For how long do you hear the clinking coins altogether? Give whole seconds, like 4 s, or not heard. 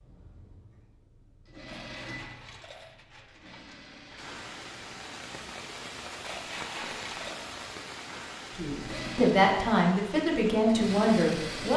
4 s.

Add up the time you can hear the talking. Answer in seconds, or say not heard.
3 s.